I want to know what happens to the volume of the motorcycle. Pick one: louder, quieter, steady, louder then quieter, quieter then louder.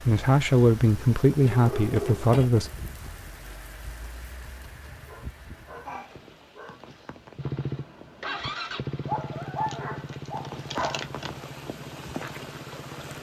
quieter.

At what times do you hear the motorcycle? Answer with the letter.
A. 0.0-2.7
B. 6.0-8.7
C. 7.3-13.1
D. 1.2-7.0
C.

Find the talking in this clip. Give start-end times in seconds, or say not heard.
0.0-2.7.